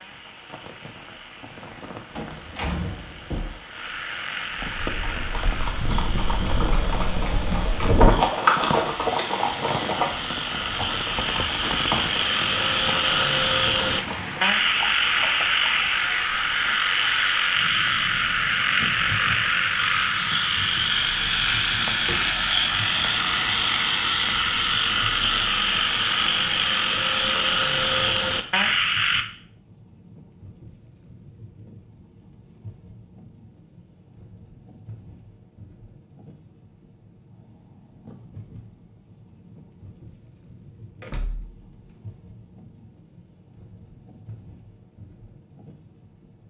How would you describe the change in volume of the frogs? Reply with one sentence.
The volume of the frogs goes up.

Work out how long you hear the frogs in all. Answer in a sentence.
You can hear the frogs for 29 seconds altogether.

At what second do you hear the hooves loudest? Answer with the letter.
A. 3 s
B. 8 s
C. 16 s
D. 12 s
B.